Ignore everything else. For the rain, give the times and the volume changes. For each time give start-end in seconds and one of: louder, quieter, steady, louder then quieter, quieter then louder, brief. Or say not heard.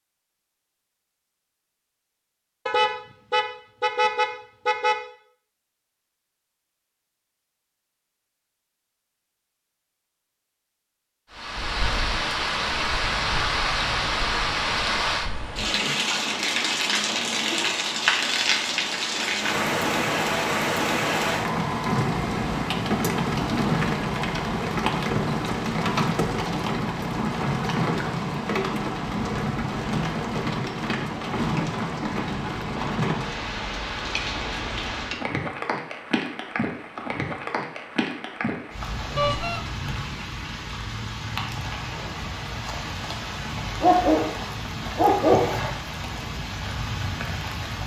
11.3-47.8 quieter.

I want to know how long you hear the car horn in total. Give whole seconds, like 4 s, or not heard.
3 s.